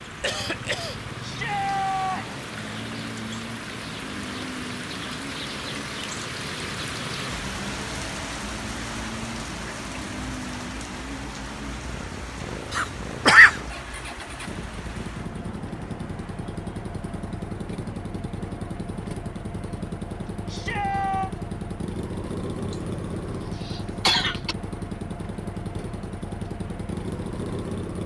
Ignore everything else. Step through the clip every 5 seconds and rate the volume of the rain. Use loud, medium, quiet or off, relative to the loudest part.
loud, loud, medium, medium, medium, medium.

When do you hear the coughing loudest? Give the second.
13 s.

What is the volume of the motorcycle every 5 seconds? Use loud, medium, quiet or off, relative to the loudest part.
medium, medium, medium, loud, loud, loud.